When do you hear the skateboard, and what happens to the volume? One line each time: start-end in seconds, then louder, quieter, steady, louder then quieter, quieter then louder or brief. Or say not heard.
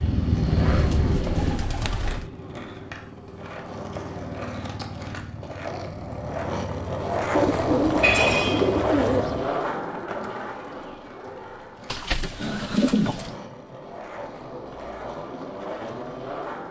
0.0-16.6 louder then quieter.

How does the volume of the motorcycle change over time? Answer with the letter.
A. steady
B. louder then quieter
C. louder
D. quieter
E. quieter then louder
D.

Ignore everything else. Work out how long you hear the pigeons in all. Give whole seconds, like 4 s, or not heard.
5 s.